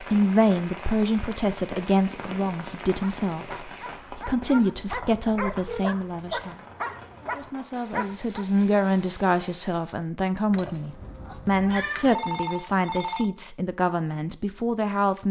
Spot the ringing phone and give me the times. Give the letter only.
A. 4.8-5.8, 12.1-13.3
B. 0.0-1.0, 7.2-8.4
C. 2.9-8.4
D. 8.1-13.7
A.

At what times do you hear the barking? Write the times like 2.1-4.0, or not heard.
2.9-8.4.